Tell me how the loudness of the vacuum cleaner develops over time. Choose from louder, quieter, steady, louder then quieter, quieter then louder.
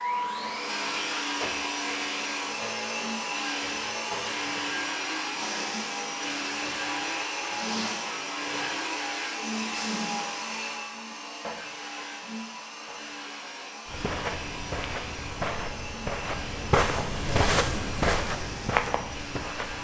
quieter.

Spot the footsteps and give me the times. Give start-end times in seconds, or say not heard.
13.8-19.7.